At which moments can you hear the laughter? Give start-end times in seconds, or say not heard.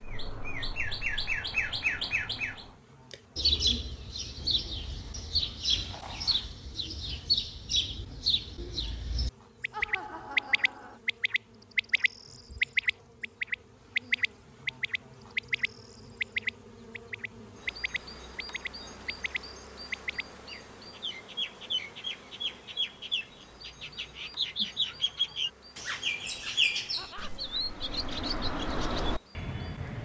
9.7-11.0, 26.9-27.6.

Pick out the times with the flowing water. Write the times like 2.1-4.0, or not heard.
not heard.